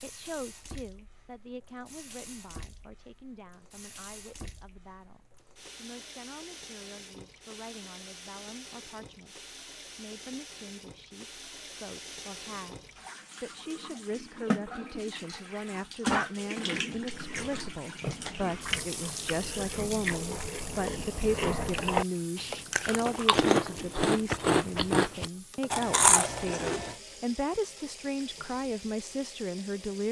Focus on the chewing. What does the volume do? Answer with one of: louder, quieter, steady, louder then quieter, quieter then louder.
louder.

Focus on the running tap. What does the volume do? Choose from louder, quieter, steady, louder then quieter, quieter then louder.
louder then quieter.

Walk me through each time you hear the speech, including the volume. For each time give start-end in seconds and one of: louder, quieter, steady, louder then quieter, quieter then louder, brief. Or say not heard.
0.0-30.0 louder.